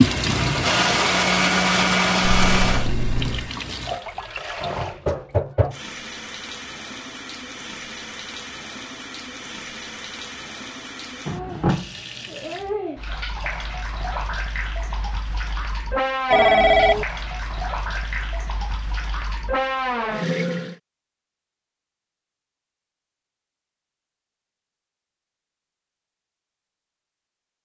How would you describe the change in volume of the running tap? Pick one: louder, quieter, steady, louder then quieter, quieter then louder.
steady.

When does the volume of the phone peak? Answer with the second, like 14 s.
17 s.